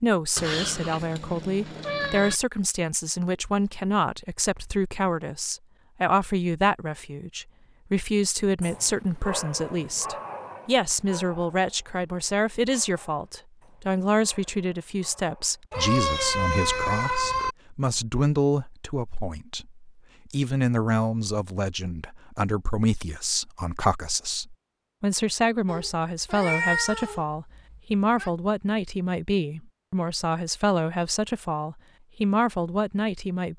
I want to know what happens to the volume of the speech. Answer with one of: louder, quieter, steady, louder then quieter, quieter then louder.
steady.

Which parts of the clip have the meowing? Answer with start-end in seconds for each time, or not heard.
0.3-2.4, 15.7-17.6, 25.6-28.3.